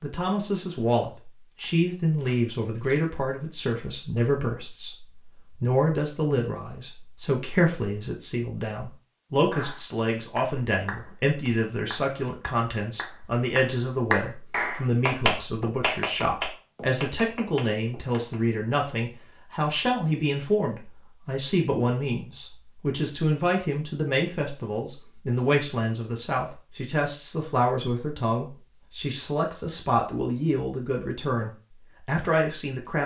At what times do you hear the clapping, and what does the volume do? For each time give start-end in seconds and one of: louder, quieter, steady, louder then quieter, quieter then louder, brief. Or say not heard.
9.5-18.4 louder then quieter.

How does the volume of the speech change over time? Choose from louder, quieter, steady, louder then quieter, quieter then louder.
steady.